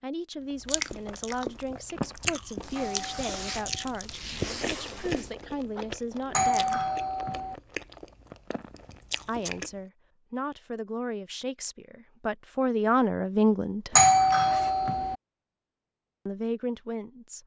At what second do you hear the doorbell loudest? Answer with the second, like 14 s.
14 s.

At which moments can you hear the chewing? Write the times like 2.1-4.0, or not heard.
0.6-9.7.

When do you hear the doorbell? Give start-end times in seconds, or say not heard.
2.8-4.0, 6.3-7.5, 13.9-15.2.